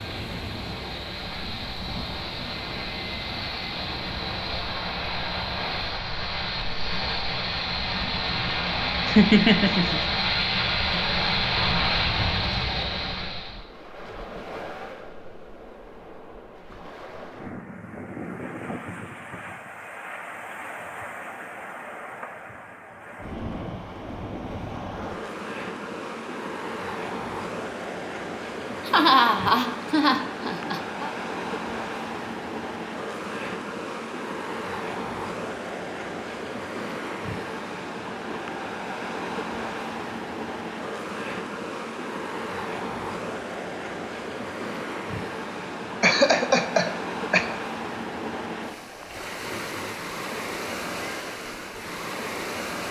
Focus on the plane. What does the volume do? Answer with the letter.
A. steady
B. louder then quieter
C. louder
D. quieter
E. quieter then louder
C.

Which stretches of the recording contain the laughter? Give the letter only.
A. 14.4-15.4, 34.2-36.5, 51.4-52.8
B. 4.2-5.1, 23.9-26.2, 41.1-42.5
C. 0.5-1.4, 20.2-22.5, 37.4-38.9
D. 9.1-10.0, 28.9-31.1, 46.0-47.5
D.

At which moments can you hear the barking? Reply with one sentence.
The barking can't be heard in this clip.